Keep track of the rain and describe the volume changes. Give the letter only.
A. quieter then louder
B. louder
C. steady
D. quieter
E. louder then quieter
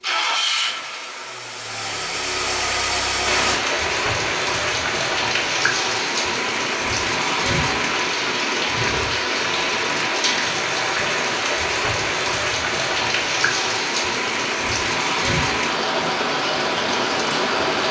C.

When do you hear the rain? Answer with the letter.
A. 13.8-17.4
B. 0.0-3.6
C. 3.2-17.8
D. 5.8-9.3
C.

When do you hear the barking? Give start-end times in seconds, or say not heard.
not heard.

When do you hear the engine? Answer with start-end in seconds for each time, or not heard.
0.0-3.6.